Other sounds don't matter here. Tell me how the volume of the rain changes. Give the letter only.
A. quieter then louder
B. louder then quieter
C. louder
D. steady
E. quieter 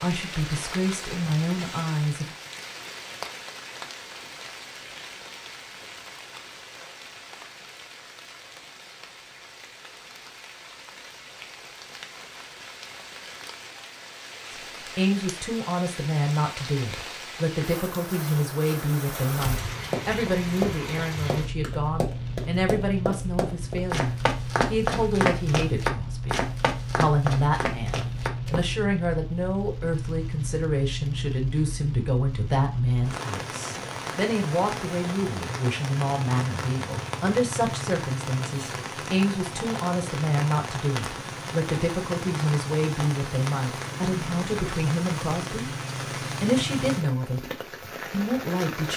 C.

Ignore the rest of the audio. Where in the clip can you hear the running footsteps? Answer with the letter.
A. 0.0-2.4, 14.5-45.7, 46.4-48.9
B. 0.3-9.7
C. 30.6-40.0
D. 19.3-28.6
D.